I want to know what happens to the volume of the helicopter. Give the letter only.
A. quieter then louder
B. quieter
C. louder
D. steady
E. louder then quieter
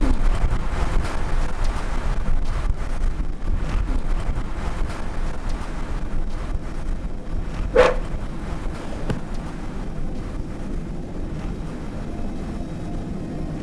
C.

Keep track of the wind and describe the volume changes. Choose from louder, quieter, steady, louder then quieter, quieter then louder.
quieter.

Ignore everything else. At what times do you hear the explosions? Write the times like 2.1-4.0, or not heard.
not heard.